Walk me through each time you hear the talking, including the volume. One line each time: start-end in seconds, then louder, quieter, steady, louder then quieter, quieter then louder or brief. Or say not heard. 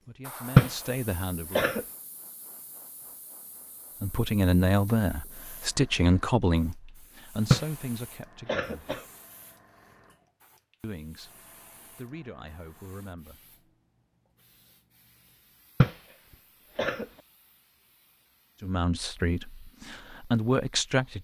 0.1-1.8 brief
4.0-8.9 quieter
10.8-13.6 brief
18.6-21.1 brief.